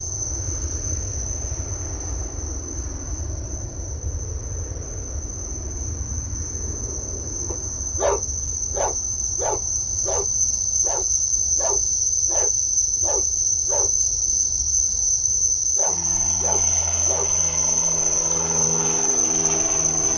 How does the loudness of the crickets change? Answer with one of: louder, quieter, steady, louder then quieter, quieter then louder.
louder.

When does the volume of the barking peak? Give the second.
8 s.